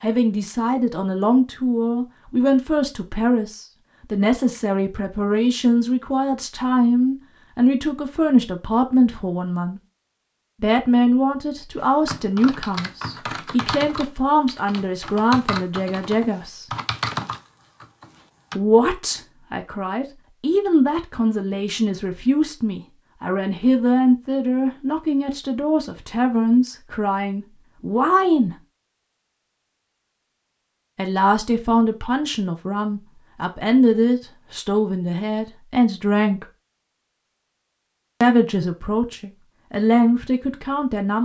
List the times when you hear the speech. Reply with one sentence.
You can hear the speech from 0.0 to 9.8 s, from 10.6 to 16.6 s, from 18.6 to 28.6 s, from 30.9 to 36.5 s and from 38.2 to 41.2 s.